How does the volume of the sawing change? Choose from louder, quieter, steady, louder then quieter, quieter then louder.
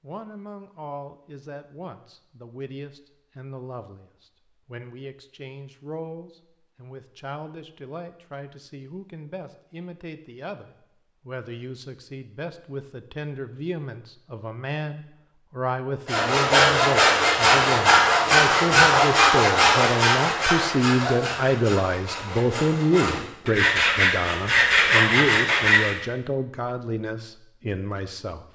quieter then louder.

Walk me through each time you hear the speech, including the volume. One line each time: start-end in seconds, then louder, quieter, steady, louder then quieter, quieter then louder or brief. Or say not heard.
0.0-28.5 louder.